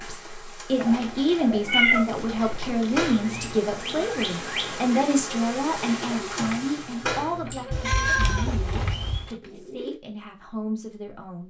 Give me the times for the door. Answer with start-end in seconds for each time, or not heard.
2.9-3.5, 7.0-7.7.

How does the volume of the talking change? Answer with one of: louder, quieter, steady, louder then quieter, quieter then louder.
quieter.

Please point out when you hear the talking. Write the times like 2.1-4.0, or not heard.
0.0-11.4.